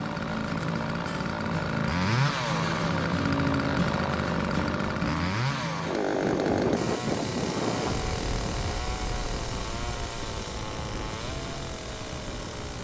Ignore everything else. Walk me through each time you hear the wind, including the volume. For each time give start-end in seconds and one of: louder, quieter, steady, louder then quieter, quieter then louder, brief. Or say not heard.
6.0-12.7 quieter.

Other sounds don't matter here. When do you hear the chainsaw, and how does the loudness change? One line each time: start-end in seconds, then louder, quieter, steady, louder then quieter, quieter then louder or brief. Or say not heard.
0.0-12.7 quieter.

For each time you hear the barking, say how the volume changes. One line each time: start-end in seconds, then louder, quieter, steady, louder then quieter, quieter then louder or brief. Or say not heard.
not heard.